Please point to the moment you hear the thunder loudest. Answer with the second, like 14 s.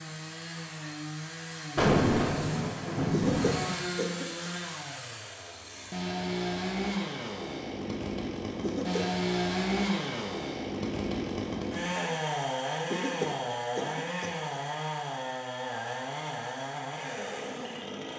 2 s.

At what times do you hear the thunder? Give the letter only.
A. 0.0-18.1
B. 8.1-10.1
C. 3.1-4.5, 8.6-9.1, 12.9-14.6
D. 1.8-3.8
D.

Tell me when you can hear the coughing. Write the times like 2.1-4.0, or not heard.
3.1-4.5, 8.6-9.1, 12.9-14.6.